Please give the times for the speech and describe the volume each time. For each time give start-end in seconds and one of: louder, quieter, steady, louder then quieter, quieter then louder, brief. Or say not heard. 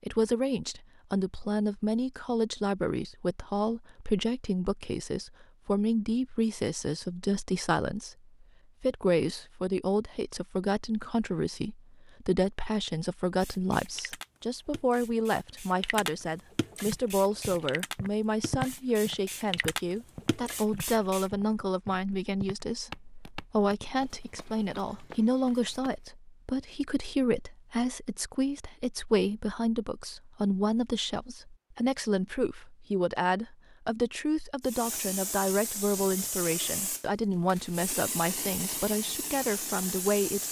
0.0-40.4 steady.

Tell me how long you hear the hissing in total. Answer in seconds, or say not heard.
14 s.